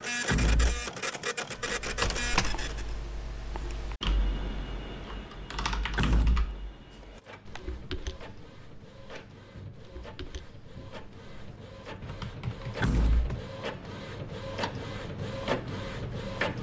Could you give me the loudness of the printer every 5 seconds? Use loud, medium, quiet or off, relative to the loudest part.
loud, quiet, medium, loud.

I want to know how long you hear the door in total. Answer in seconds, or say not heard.
2 s.